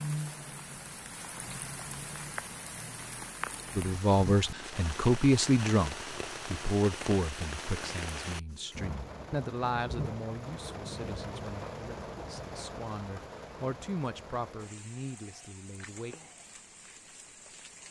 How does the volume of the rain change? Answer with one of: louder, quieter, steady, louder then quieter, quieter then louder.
quieter.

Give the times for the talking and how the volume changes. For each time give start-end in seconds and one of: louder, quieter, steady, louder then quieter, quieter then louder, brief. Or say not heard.
3.8-16.1 quieter then louder.